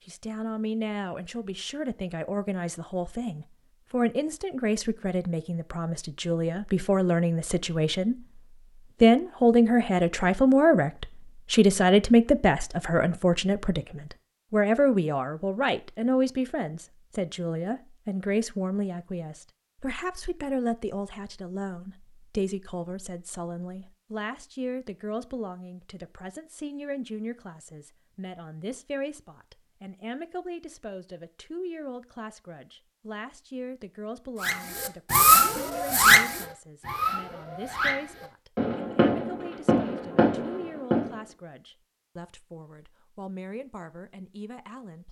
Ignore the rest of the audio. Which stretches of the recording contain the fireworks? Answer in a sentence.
The fireworks can be heard from 34.4 to 41.2 s.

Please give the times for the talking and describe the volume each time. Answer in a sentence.
You can hear the talking from 0.1 to 8.4 s, getting louder; and from 9.0 to 45.0 s, getting quieter.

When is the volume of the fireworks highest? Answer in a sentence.
The loudest moment of the fireworks is at 35 seconds.